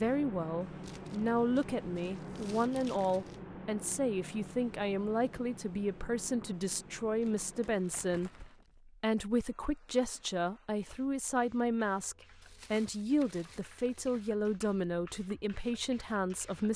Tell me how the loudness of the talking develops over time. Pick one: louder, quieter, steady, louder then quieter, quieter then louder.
steady.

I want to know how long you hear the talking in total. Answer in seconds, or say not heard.
17 s.